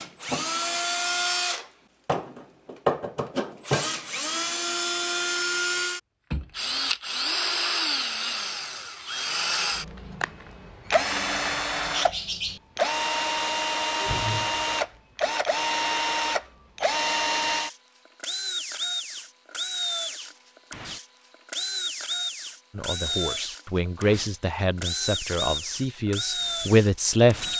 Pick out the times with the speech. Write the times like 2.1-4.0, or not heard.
22.8-27.5.